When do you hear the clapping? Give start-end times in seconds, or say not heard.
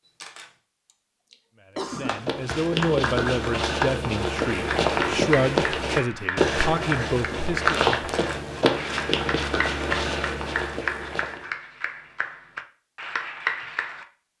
2.0-14.1.